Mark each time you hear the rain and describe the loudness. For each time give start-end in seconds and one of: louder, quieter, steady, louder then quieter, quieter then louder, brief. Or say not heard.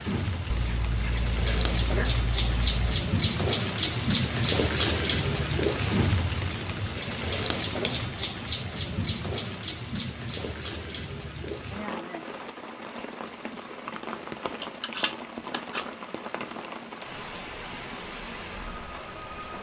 0.0-19.5 quieter.